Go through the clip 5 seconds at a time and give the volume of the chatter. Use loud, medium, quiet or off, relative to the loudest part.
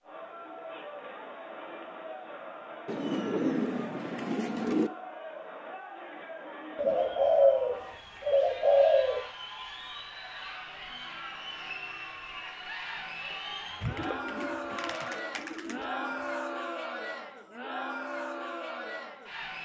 medium, medium, loud, loud.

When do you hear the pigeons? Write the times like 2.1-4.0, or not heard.
2.9-4.9, 6.8-9.3, 13.8-16.1.